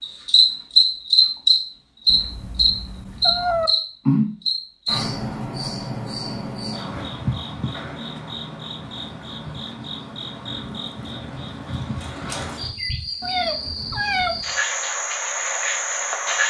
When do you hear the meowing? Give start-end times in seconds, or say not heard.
2.0-3.7, 13.2-14.4.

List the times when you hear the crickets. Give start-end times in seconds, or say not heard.
0.0-16.4.